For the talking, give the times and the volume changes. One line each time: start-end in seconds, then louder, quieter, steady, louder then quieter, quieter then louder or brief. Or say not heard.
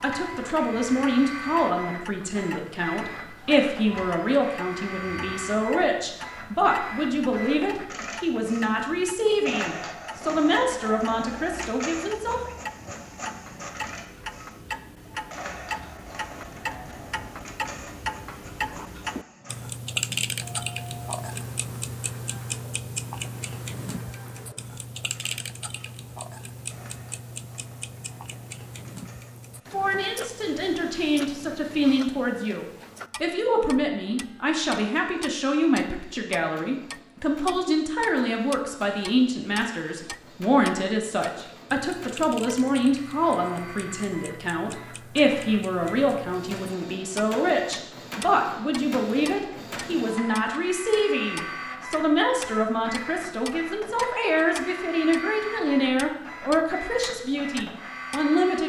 0.0-12.6 steady
29.7-58.6 steady.